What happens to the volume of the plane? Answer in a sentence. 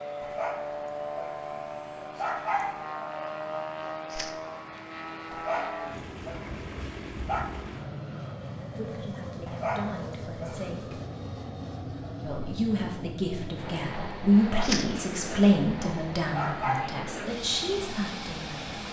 The volume of the plane stays about the same.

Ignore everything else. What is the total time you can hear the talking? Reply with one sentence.
You can hear the talking for 9 seconds altogether.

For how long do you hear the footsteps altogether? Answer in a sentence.
You can't hear the footsteps here.